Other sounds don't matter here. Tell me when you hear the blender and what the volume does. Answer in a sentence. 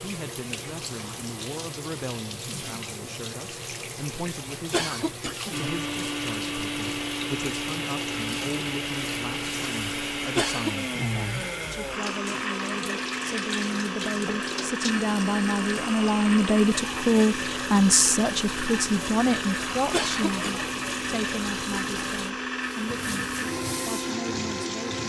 You can hear the blender from 5.5 to 25.0 s, at a steady volume.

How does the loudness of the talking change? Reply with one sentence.
The loudness of the talking goes up, then down.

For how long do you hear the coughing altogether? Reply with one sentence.
The coughing can be heard for 2 seconds in total.